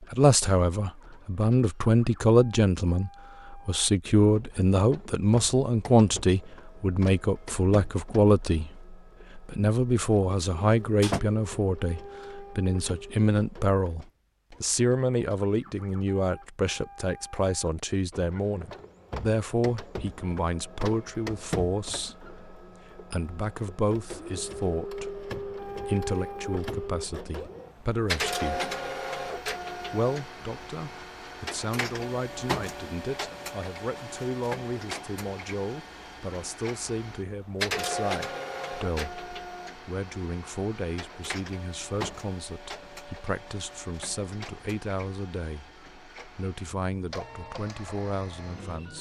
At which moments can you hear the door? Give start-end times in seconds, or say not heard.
10.6-11.2.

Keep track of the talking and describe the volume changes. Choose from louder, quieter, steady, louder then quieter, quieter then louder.
quieter.